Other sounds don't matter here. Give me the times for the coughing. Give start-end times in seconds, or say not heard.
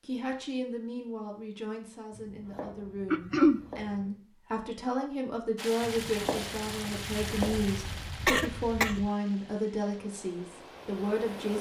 3.1-3.6, 7.1-9.1.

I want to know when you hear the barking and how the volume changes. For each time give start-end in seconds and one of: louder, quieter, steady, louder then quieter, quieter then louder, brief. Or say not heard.
not heard.